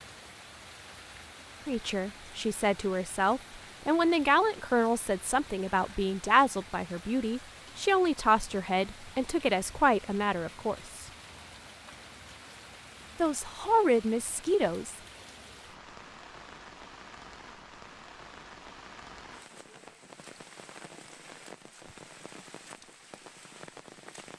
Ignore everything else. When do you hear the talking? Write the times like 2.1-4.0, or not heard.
1.6-11.1, 13.2-15.0.